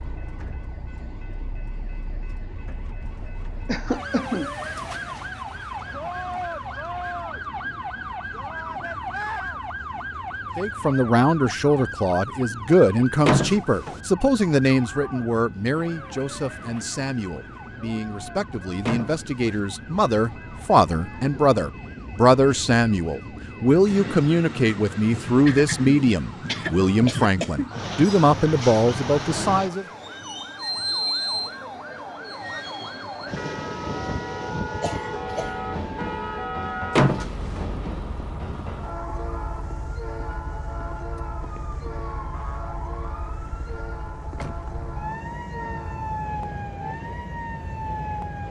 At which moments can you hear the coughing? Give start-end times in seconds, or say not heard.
3.6-4.5, 25.4-27.7, 34.8-35.7.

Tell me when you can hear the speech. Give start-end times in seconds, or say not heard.
10.6-29.9.